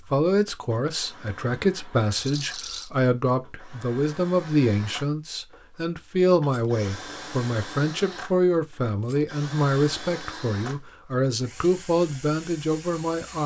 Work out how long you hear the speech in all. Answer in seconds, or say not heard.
13 s.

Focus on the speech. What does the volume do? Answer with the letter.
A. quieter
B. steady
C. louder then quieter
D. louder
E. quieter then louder
B.